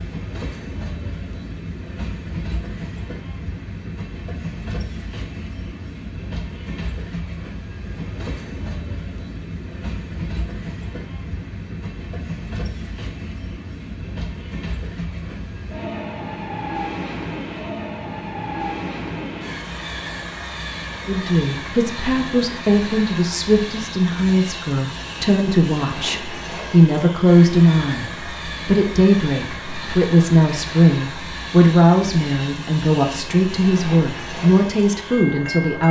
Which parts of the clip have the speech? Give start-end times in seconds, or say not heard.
21.1-35.8.